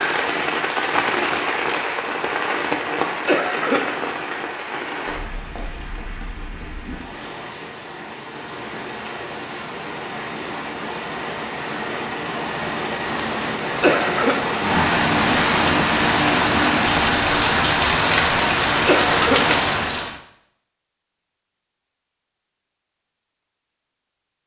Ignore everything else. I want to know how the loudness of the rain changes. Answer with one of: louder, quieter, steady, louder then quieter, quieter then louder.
quieter then louder.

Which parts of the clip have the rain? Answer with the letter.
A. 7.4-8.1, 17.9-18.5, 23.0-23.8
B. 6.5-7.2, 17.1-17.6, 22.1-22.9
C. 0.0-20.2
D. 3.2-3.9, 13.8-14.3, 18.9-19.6
C.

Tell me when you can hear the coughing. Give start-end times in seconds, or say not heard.
3.2-3.9, 13.8-14.3, 18.9-19.6.